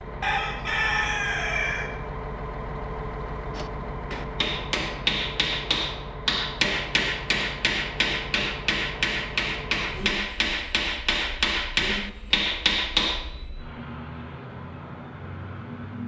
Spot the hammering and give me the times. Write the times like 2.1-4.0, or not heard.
3.5-13.3.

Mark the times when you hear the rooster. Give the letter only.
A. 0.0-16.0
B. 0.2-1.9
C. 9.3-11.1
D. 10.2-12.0
B.